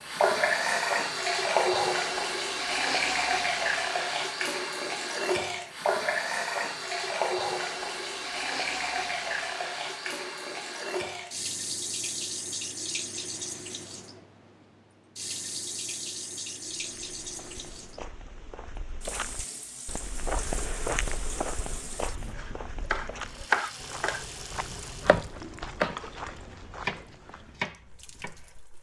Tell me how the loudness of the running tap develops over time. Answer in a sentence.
The loudness of the running tap goes down.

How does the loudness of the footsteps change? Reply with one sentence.
The volume of the footsteps goes up, then down.